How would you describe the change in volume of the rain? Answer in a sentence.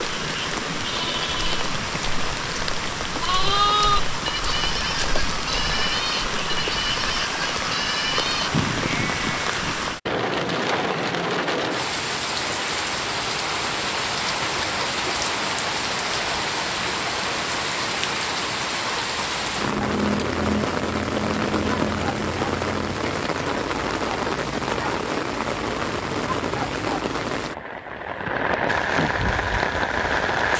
The volume of the rain stays about the same.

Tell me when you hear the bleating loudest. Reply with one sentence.
The volume of the bleating peaks at 4 seconds.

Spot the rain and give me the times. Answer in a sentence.
The rain can be heard from 0.0 to 30.5 s.